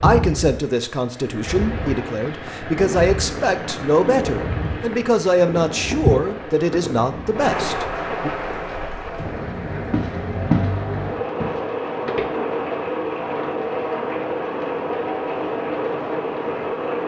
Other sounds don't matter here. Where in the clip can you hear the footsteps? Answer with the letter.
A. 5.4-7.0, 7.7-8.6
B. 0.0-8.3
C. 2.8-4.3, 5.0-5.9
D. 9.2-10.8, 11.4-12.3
D.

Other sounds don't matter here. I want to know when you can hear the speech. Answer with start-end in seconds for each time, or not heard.
0.0-8.3.